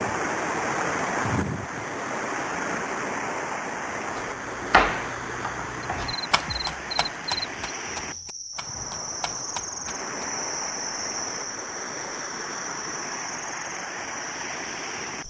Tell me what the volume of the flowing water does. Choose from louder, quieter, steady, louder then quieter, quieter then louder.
quieter.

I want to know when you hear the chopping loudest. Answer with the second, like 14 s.
5 s.